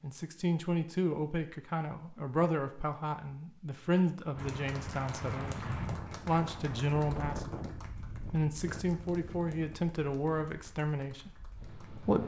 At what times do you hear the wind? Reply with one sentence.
The wind can be heard from 4.3 to 12.2 s.